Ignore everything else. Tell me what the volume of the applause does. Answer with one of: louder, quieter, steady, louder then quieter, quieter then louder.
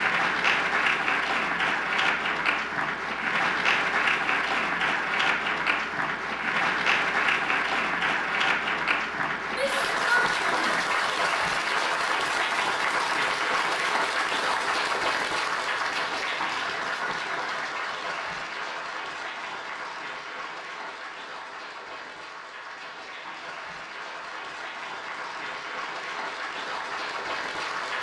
quieter.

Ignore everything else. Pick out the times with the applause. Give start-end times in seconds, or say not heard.
0.0-27.9.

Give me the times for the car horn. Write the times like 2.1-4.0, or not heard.
not heard.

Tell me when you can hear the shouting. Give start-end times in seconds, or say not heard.
9.5-10.8.